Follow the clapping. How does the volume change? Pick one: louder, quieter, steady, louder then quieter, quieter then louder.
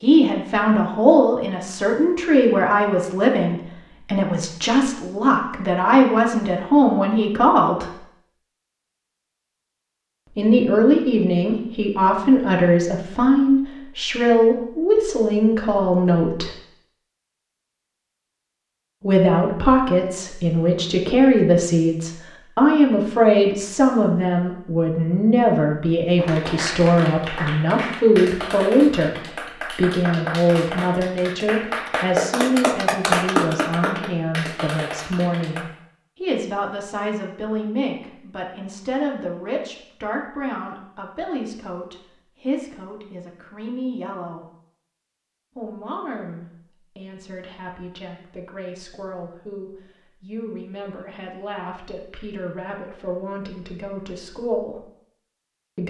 louder then quieter.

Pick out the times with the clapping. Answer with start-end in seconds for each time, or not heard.
26.1-35.6.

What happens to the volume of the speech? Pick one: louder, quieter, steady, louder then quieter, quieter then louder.
quieter.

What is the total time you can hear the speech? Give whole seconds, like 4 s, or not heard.
49 s.